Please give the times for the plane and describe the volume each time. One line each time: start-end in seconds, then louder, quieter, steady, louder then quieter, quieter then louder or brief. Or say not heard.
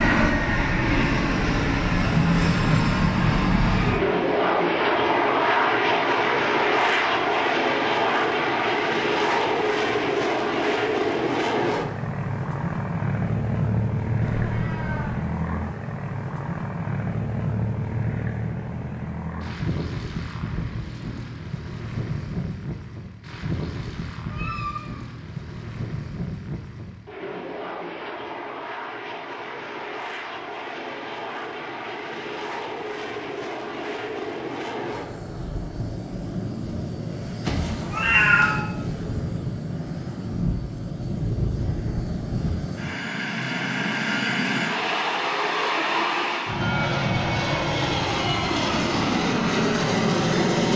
0.0-50.7 quieter then louder.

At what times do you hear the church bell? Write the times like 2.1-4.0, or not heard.
not heard.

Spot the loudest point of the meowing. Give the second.
38 s.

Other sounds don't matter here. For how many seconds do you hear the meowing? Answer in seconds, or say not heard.
3 s.